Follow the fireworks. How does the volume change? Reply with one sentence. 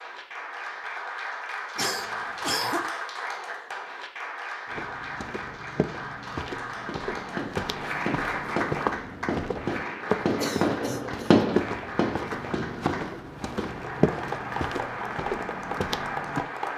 The volume of the fireworks goes up, then down.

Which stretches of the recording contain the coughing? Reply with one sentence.
You can hear the coughing from 1.8 to 2.9 s and from 10.2 to 11.4 s.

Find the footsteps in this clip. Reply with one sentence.
The footsteps can be heard from 4.7 to 16.4 s.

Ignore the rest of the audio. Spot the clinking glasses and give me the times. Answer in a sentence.
You can't hear the clinking glasses here.